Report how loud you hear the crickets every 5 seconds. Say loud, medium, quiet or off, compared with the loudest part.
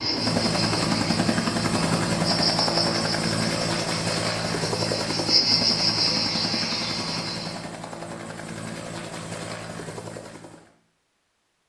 medium, loud, off.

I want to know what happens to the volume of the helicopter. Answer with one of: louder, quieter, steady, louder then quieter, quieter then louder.
quieter.